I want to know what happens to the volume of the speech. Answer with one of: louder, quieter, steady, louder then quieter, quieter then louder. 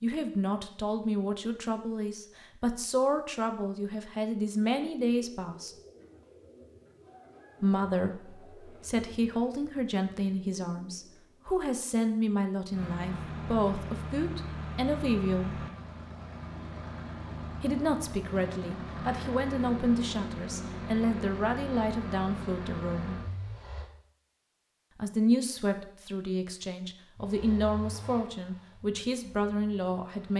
steady.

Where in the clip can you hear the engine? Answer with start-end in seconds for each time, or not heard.
12.7-23.9, 27.1-30.3.